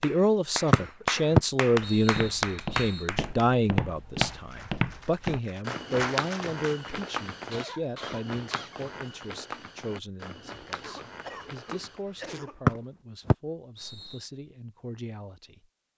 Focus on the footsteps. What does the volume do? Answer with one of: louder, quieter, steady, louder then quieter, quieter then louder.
quieter.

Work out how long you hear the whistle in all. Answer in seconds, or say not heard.
4 s.